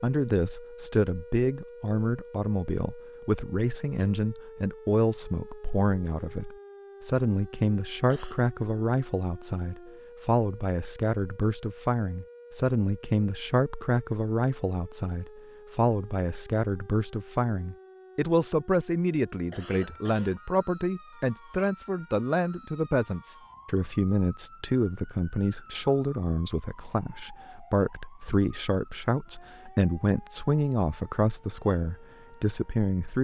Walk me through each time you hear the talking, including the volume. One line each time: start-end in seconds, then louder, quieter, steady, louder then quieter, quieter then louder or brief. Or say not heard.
0.0-33.1 steady.